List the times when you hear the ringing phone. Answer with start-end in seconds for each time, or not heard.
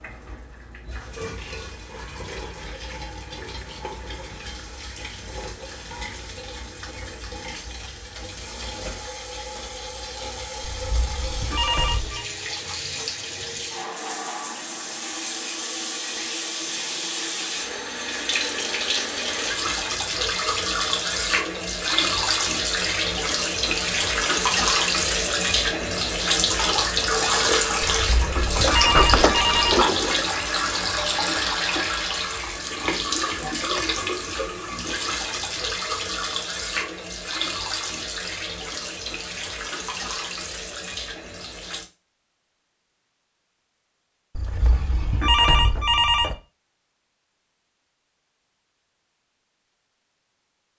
10.6-12.2, 27.9-29.8, 44.4-46.4.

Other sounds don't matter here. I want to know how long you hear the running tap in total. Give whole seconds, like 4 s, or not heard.
42 s.